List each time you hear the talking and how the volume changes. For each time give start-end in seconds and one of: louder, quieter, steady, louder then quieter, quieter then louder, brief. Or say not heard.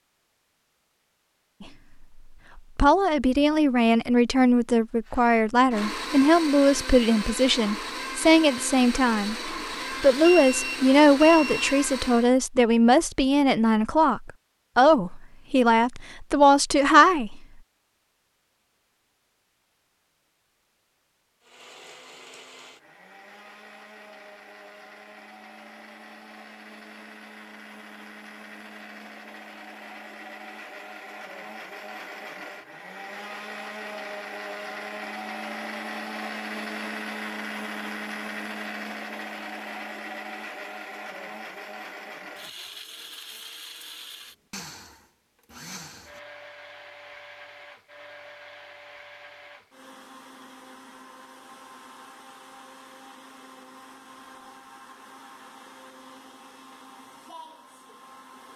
2.8-17.4 steady.